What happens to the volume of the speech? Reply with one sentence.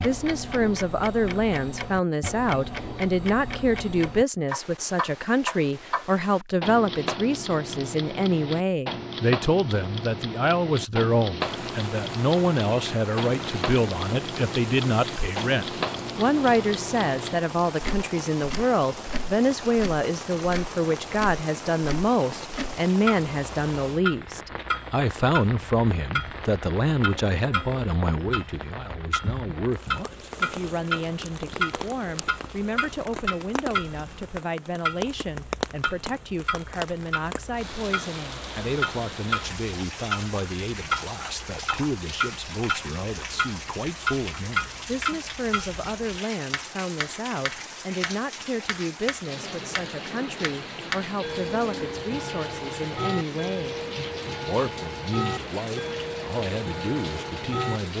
The volume of the speech goes down.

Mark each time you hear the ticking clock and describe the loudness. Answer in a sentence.
The ticking clock can be heard from 0.0 to 57.8 s, at a steady volume.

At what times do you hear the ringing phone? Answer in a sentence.
The ringing phone can't be heard in this clip.